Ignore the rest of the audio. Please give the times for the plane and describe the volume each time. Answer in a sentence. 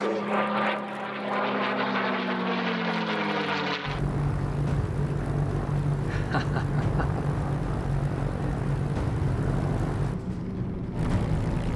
The plane can be heard from 0.0 to 11.7 s, at a steady volume.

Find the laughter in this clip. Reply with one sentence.
The laughter can be heard from 6.0 to 7.2 s.